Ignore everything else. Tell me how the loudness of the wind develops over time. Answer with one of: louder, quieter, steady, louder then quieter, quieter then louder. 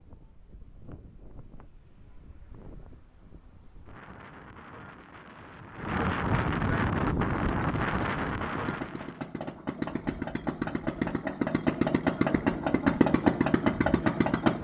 louder.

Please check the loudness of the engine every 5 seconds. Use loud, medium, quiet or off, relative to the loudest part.
off, medium, loud.